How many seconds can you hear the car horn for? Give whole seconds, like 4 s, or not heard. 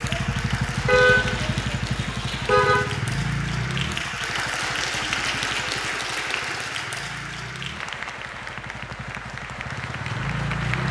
2 s.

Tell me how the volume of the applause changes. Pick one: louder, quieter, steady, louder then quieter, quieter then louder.
louder then quieter.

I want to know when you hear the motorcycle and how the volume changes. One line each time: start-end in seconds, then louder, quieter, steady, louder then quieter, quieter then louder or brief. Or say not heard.
0.0-10.8 quieter then louder.